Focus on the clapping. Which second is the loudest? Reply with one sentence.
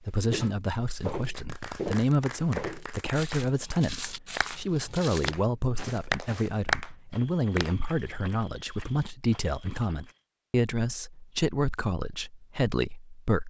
The volume of the clapping peaks at 7 seconds.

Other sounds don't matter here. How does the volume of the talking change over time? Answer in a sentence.
The volume of the talking stays about the same.